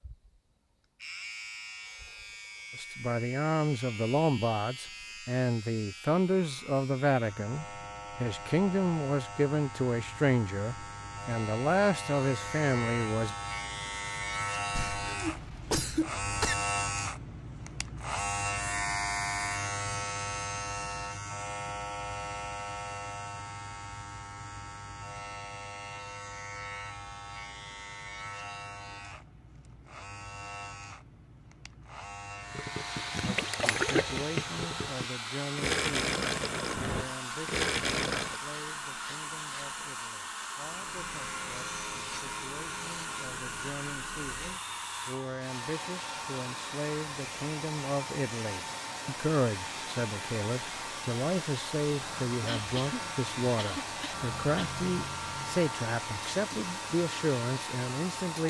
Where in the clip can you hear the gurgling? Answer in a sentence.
You can hear the gurgling from 32.5 to 38.4 s.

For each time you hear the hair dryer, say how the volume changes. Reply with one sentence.
The hair dryer can be heard from 32.4 to 58.4 s, at a steady volume.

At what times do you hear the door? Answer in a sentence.
The door can't be heard in this clip.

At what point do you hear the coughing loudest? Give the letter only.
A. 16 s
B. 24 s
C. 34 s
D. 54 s
A.